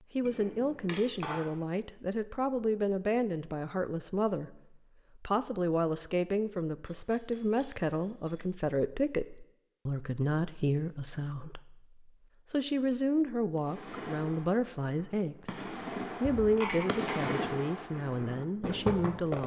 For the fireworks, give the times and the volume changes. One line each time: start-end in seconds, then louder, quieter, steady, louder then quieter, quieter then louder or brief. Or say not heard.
13.6-19.4 louder.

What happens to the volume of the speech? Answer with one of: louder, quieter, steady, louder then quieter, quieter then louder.
steady.